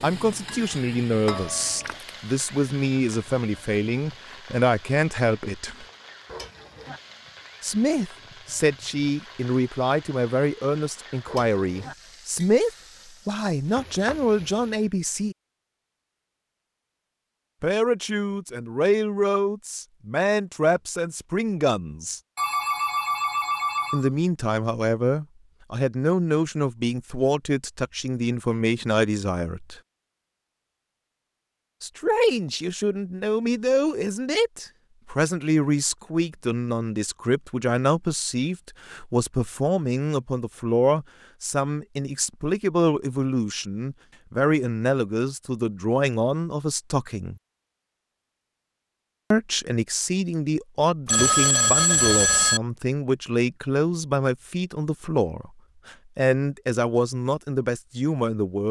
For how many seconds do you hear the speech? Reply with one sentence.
The speech can be heard for 49 seconds in total.